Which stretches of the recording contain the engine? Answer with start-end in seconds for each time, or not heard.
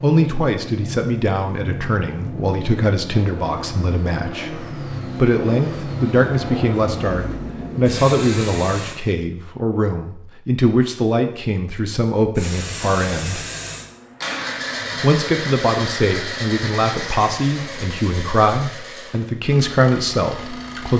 0.0-9.0, 12.3-20.9.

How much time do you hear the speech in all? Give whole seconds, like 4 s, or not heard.
19 s.